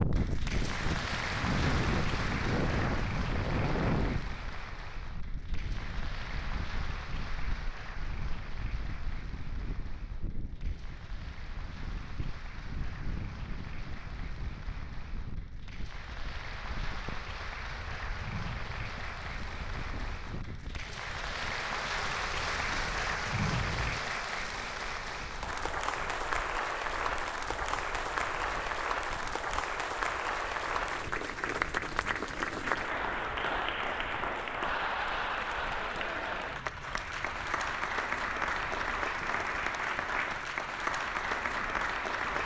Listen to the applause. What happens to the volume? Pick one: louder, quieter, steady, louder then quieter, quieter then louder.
quieter then louder.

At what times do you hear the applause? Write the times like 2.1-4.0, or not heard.
0.0-42.3.